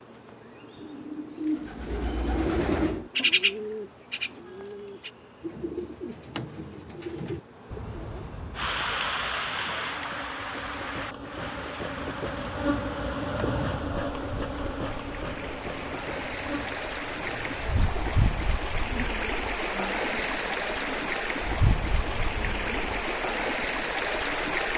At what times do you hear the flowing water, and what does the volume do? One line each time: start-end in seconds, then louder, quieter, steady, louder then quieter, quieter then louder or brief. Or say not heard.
8.6-24.7 quieter then louder.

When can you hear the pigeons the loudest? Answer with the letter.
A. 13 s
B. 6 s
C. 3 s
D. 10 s
C.